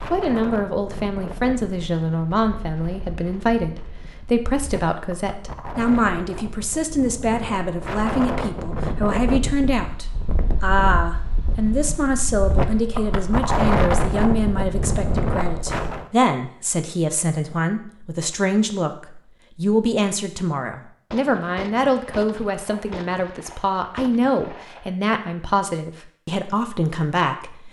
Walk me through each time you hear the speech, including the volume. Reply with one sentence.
The speech can be heard from 0.0 to 27.6 s, at a steady volume.